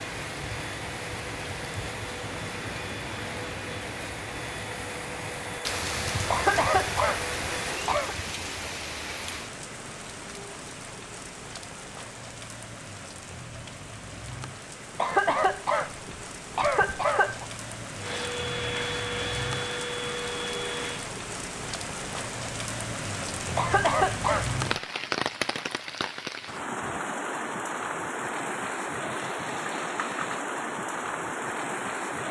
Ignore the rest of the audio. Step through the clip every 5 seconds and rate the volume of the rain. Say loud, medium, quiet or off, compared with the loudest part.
medium, loud, medium, medium, loud, loud, loud.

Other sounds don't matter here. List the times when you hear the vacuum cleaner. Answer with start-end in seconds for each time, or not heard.
0.0-8.0, 17.9-21.1.